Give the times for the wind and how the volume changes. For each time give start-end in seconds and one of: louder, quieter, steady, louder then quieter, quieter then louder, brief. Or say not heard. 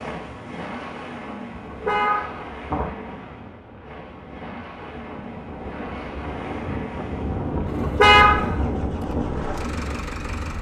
0.2-10.5 louder.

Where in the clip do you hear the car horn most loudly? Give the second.
8 s.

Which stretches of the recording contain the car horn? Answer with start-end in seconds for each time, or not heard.
1.6-2.9, 7.7-8.6.